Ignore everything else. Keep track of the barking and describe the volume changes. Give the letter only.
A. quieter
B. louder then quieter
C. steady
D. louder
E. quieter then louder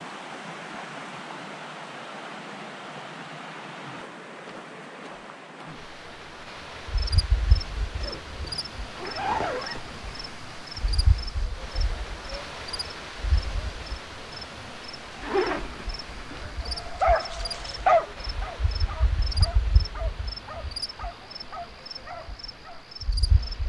A.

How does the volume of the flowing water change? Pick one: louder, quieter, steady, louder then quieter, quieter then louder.
quieter.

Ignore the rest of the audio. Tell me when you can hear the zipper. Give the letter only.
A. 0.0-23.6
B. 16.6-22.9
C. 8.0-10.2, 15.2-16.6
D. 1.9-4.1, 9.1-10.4
C.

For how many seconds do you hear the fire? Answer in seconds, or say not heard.
not heard.